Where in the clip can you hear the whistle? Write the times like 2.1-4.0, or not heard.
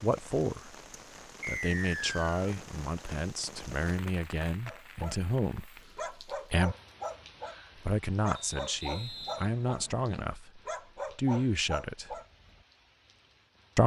1.4-2.5, 8.3-10.3.